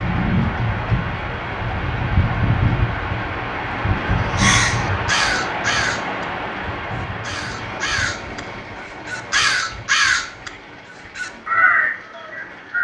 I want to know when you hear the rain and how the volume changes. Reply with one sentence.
The rain can be heard from 0.0 to 12.7 s, getting quieter.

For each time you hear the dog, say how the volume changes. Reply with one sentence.
The dog can't be heard in this clip.